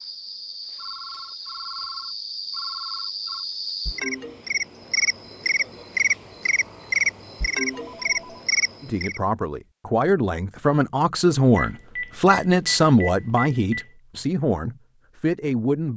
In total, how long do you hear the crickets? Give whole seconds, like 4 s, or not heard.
9 s.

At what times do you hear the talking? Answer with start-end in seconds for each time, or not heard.
8.8-15.9.